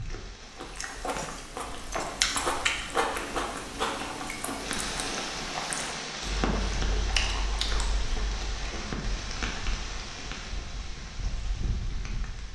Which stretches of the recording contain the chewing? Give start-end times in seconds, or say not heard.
0.5-8.6.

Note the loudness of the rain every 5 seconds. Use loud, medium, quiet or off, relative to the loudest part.
medium, loud, medium.